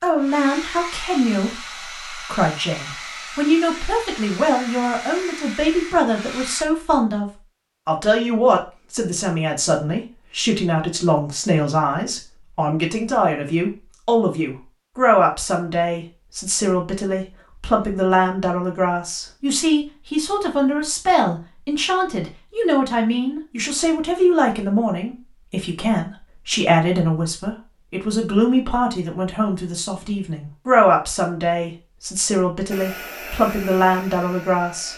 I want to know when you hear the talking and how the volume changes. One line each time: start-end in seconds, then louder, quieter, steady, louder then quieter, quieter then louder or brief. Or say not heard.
0.0-34.9 steady.